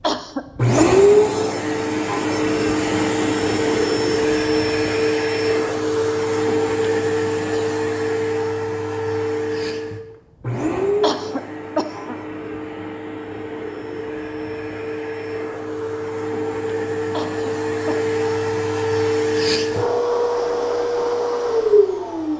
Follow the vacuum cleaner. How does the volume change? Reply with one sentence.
The volume of the vacuum cleaner goes down, then up.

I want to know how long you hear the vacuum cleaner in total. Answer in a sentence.
You can hear the vacuum cleaner for 22 seconds altogether.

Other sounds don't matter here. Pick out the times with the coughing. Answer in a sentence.
You can hear the coughing from 0.0 to 0.9 s, from 11.0 to 12.2 s and from 17.1 to 18.1 s.